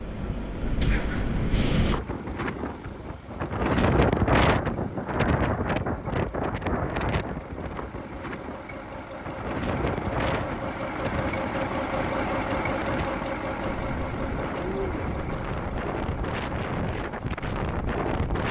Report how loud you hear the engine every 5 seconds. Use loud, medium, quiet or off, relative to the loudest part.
quiet, medium, loud, medium.